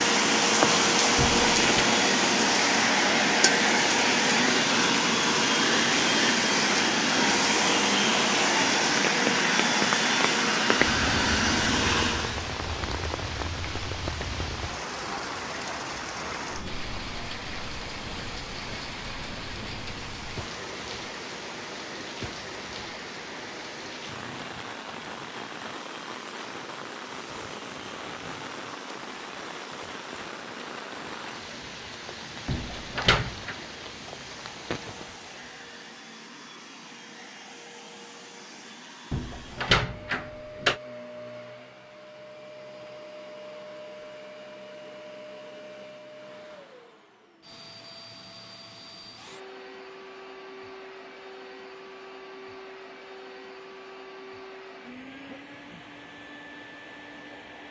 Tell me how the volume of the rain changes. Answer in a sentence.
The volume of the rain goes down.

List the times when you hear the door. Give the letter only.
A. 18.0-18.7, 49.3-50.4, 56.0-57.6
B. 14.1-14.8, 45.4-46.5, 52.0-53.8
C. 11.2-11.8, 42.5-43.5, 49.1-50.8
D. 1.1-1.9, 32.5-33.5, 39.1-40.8
D.